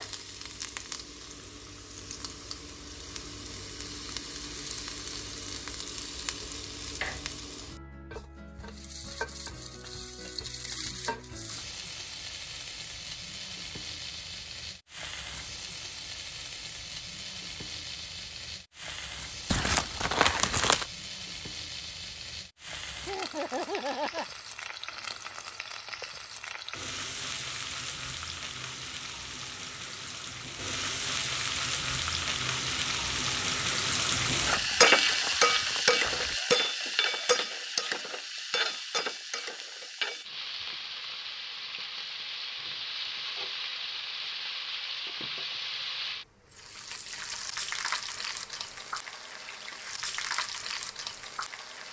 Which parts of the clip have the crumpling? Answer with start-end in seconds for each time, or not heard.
19.5-20.9, 34.5-36.4.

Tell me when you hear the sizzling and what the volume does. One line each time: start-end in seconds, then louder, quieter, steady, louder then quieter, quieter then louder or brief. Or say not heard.
0.0-51.8 louder then quieter.